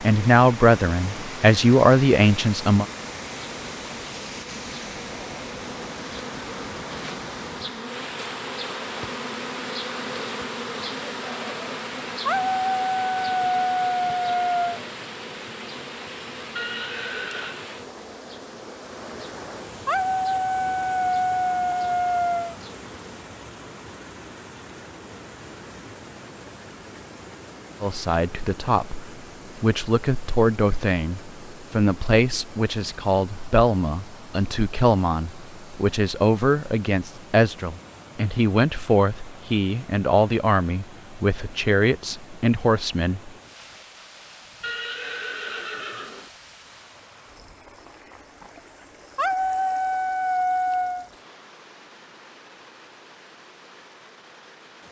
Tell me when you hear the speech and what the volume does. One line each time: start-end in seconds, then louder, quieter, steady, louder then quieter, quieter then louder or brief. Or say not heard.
0.0-2.9 brief
27.8-43.3 steady.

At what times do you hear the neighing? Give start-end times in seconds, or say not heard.
16.6-17.6, 44.6-46.3.